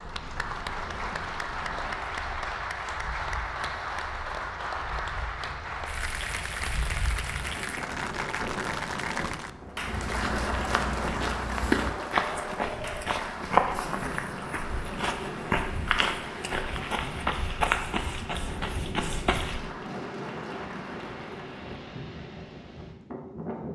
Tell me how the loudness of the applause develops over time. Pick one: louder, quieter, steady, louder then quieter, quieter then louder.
quieter.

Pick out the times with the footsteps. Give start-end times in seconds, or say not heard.
9.8-19.6.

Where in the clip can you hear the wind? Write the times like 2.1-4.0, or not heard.
0.0-23.6.